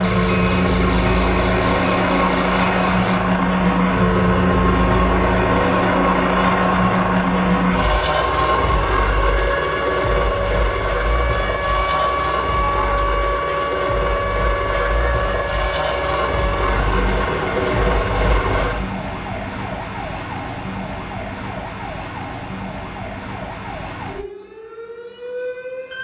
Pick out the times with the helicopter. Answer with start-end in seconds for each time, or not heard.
0.0-18.9.